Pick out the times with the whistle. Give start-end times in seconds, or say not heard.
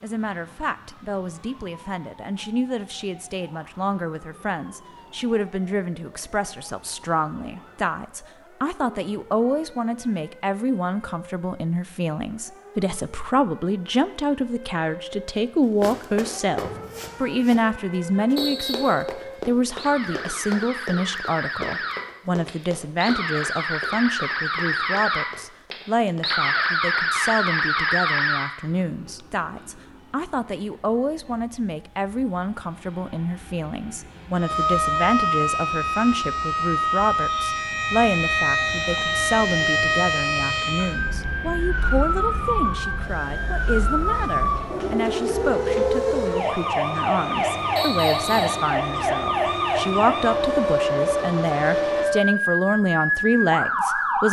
18.4-18.9, 47.8-48.6.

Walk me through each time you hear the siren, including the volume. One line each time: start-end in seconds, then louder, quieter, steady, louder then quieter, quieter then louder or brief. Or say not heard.
0.0-28.5 louder
34.4-54.2 steady.